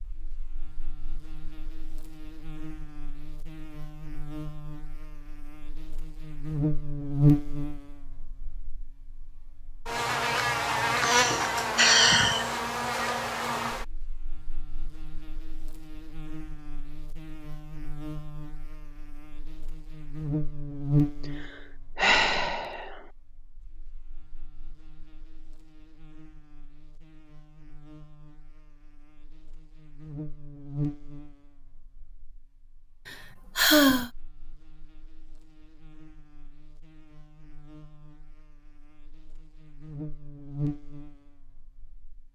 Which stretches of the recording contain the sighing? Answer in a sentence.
You can hear the sighing from 11.0 to 12.5 s, from 21.4 to 22.9 s and from 33.0 to 34.1 s.